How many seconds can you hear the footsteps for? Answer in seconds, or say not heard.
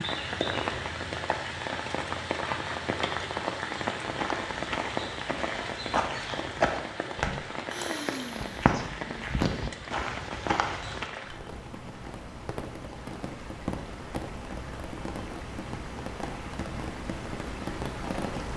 7 s.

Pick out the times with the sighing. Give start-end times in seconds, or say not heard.
7.7-8.6.